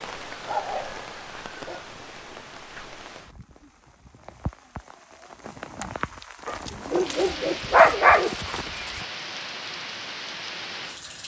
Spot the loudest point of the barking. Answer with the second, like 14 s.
8 s.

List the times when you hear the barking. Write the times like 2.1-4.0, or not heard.
0.3-1.9, 6.5-9.0.